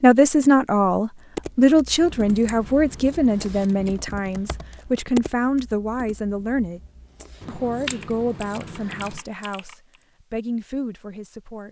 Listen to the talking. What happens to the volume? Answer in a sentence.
The volume of the talking goes down.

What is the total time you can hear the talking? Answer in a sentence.
You can hear the talking for 11 seconds altogether.